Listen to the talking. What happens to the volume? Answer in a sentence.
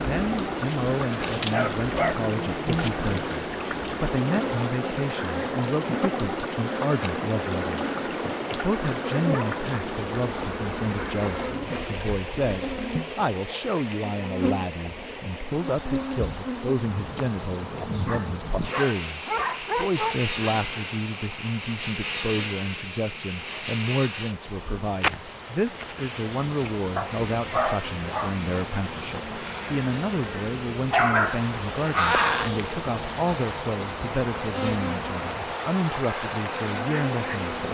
The volume of the talking stays about the same.